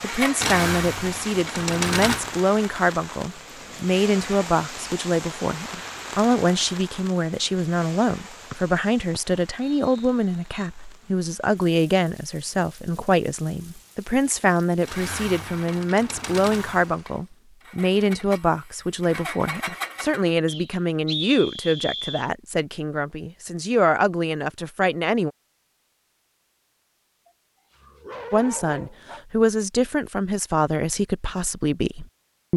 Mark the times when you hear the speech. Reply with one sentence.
You can hear the speech from 0.0 to 25.3 s and from 28.3 to 32.5 s.